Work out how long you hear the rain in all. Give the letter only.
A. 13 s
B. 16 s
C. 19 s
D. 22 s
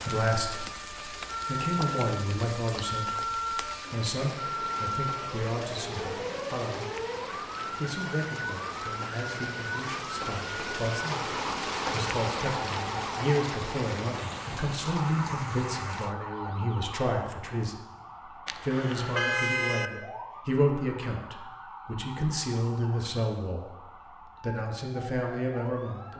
B.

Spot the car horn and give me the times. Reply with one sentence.
The car horn can be heard from 18.4 to 19.9 s.